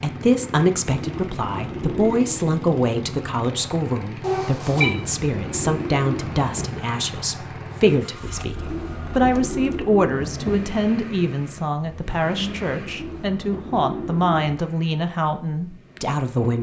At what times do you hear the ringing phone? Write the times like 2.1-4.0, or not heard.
4.2-4.9.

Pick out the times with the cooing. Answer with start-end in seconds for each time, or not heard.
0.9-2.5, 4.8-6.7, 8.6-10.6, 12.8-14.6.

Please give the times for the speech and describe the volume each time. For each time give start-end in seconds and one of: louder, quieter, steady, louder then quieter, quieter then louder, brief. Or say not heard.
0.0-16.5 steady.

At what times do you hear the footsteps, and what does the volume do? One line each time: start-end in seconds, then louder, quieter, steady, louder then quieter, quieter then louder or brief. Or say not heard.
not heard.